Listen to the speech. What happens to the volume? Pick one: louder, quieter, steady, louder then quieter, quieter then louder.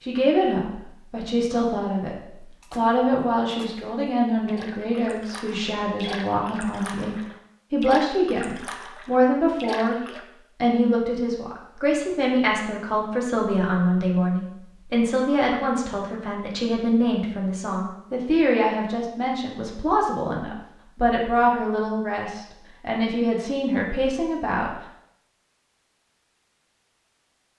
steady.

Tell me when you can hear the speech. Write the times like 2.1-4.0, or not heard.
0.0-9.9, 10.6-24.7.